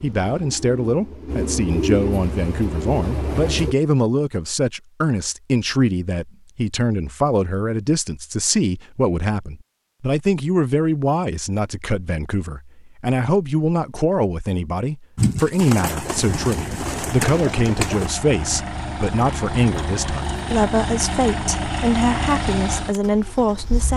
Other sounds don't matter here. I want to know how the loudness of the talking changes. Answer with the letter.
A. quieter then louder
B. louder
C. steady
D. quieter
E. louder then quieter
C.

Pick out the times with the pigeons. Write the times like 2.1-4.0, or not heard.
0.0-3.8, 15.2-18.1.